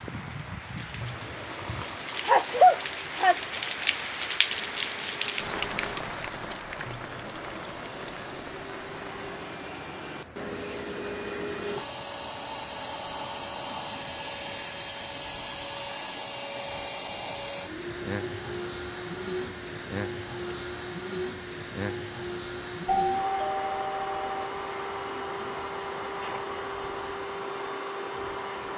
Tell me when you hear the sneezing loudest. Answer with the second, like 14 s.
3 s.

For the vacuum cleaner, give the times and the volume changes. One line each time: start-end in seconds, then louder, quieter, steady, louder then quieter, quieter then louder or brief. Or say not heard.
0.0-28.7 louder.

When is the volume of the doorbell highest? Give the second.
23 s.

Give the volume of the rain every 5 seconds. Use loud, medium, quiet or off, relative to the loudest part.
loud, loud, quiet, medium, quiet, quiet.